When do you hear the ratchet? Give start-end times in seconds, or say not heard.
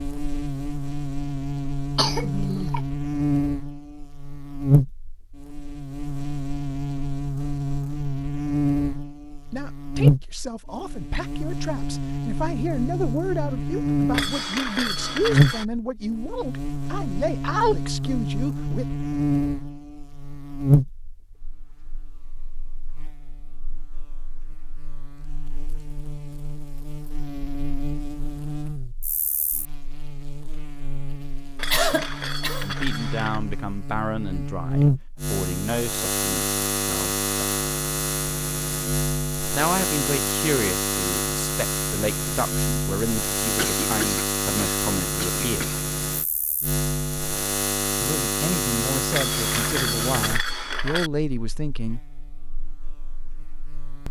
14.1-15.7, 31.6-33.4, 49.1-51.1.